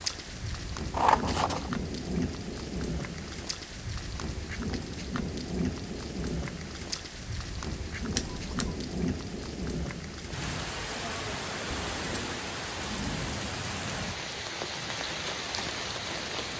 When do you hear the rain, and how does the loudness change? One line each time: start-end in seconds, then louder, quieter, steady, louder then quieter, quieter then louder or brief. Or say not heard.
0.0-16.5 steady.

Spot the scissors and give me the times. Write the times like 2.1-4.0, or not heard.
0.9-1.7, 8.2-8.7, 11.7-12.3.